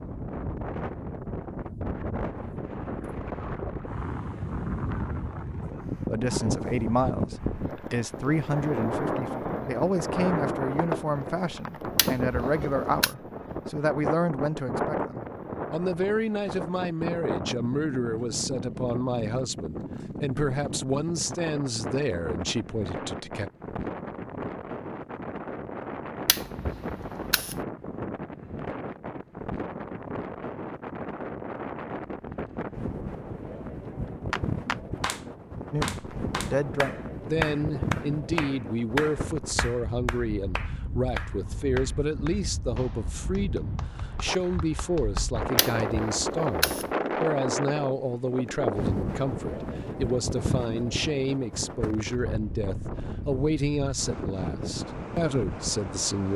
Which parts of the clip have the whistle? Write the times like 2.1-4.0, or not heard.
not heard.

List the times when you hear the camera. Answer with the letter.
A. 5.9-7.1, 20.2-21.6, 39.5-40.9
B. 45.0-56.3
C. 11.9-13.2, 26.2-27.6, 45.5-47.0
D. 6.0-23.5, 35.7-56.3
C.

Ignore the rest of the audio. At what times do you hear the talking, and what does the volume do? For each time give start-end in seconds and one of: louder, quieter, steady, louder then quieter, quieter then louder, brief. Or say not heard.
6.0-23.5 steady
35.7-56.3 steady.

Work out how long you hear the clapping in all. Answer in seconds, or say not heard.
11 s.